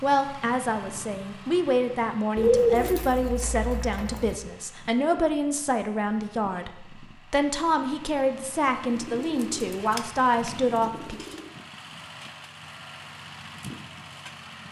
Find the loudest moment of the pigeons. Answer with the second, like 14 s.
3 s.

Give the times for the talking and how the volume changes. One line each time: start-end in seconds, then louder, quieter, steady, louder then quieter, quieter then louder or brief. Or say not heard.
0.0-11.2 steady.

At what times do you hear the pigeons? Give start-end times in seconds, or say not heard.
2.4-4.3, 8.8-11.4.